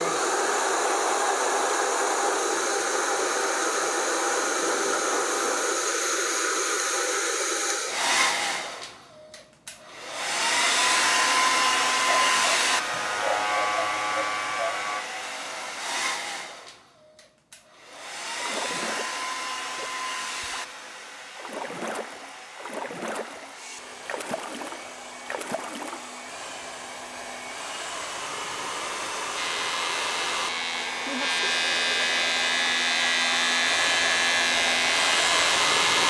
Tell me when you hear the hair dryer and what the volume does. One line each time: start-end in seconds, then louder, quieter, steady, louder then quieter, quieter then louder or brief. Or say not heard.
0.0-36.0 quieter then louder.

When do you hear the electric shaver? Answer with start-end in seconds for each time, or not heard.
12.1-15.1, 29.4-36.0.